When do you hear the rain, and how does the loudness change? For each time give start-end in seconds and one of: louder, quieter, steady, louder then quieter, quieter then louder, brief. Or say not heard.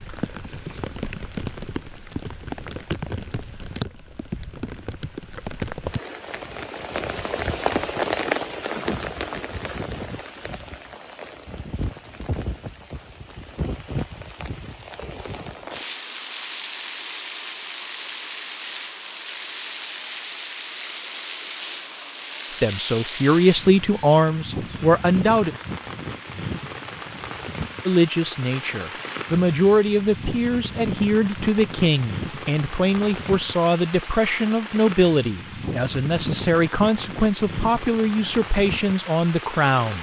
0.0-39.9 steady.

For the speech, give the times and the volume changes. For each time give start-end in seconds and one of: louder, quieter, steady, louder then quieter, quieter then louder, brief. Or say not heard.
22.6-25.6 brief
27.9-39.9 steady.